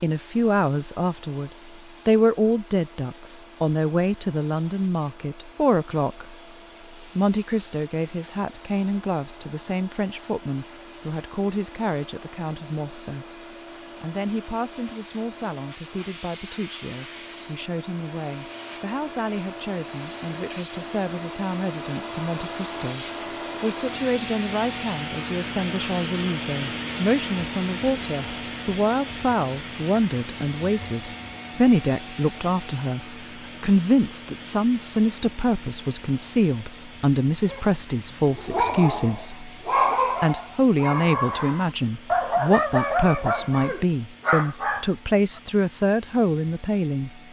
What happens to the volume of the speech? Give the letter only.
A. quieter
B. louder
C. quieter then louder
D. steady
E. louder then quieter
C.